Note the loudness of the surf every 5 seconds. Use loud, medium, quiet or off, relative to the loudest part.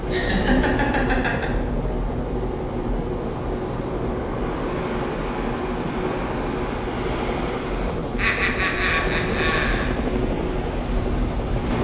loud, loud, medium.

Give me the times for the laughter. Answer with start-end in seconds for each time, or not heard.
0.1-1.5, 8.2-9.9.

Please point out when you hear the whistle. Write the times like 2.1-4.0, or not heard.
not heard.